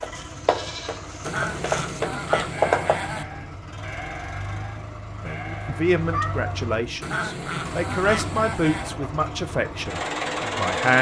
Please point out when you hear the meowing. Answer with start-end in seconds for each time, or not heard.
5.7-6.6.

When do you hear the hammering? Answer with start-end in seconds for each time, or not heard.
0.0-3.0.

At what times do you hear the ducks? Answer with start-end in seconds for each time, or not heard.
1.2-3.2, 7.0-9.0.